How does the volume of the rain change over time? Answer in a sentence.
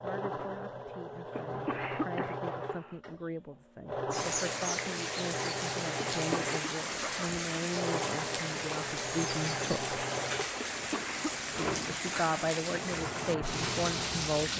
The loudness of the rain stays about the same.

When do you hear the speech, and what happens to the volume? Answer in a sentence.
You can hear the speech from 0.0 to 9.9 s, getting louder; and briefly from 11.6 to 14.5 s.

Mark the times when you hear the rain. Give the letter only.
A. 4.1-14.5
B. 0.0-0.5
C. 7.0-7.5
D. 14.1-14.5
A.